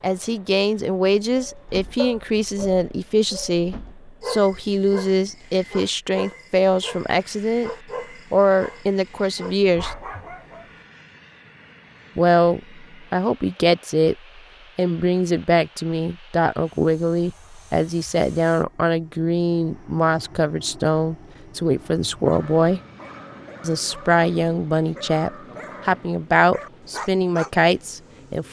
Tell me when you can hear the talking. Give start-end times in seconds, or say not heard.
0.0-7.7, 8.3-9.9, 12.2-14.2, 14.8-22.8, 23.6-28.4.